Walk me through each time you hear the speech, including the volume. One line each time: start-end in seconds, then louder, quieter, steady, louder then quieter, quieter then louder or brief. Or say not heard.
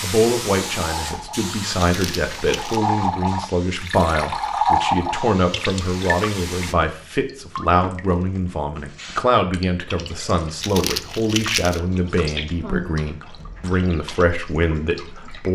0.0-15.4 steady.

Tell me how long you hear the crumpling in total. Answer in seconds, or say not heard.
2 s.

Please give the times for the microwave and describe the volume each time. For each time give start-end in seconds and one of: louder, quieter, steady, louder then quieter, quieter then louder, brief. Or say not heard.
not heard.